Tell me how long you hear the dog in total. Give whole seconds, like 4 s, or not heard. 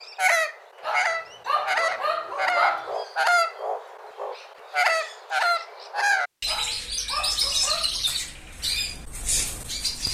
4 s.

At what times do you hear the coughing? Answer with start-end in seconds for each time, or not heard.
not heard.